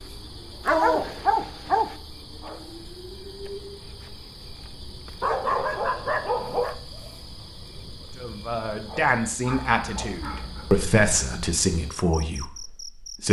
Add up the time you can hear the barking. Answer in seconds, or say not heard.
5 s.